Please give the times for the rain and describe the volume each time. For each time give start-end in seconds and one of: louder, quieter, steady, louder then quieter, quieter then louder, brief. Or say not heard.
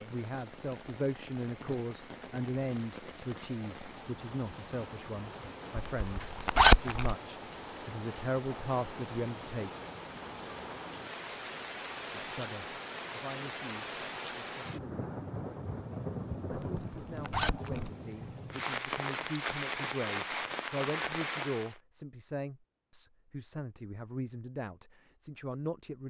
0.0-21.8 louder.